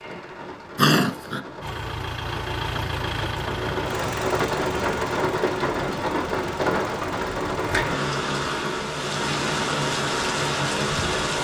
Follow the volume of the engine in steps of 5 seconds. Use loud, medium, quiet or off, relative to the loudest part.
loud, medium, off.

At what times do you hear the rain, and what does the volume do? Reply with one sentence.
The rain can be heard from 0.0 to 11.4 s, getting louder.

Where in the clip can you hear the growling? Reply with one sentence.
The growling can be heard from 0.8 to 1.4 s.